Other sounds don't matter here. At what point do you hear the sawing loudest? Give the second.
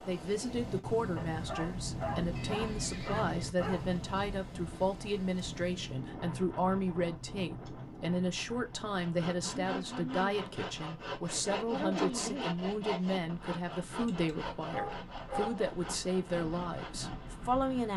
12 s.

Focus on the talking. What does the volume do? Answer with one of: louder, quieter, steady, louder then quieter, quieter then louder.
steady.